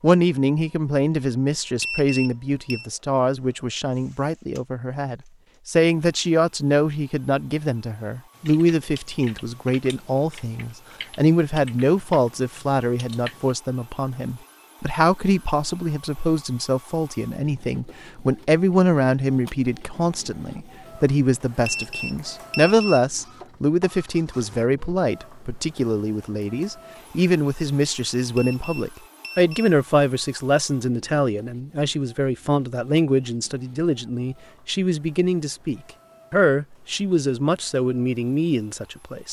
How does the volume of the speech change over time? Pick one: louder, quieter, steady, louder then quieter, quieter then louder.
steady.